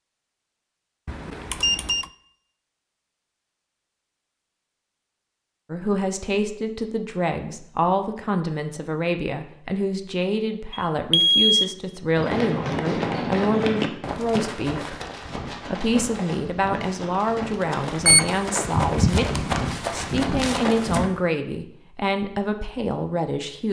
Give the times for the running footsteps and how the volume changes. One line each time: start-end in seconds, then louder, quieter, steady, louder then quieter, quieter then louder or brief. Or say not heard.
12.2-21.1 quieter then louder.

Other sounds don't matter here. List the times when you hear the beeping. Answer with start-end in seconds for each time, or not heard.
1.1-2.0, 10.7-11.7, 18.1-19.4.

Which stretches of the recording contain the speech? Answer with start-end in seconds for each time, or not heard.
5.7-14.9, 15.7-23.6.